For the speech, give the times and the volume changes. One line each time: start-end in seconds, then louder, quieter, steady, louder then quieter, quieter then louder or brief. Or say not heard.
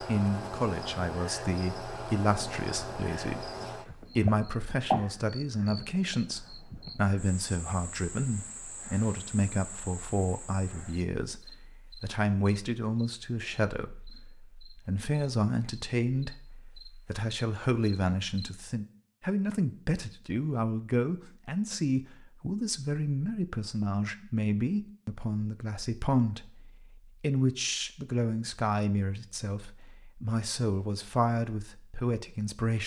0.0-32.8 steady.